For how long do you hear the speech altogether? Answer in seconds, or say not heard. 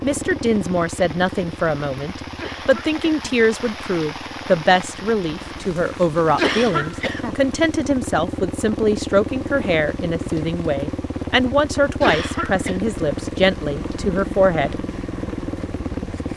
15 s.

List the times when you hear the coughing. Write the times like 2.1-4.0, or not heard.
2.4-3.4, 6.3-7.3, 12.0-12.8.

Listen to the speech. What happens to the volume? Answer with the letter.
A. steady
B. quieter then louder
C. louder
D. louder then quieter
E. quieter
A.